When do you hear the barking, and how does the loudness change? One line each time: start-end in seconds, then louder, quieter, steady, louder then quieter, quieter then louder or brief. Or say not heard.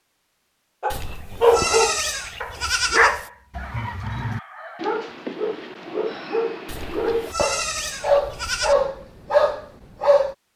0.8-10.3 quieter then louder.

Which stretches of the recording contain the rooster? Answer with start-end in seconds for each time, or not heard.
3.5-5.0.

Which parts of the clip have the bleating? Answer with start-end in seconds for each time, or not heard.
0.9-3.3, 6.7-8.8.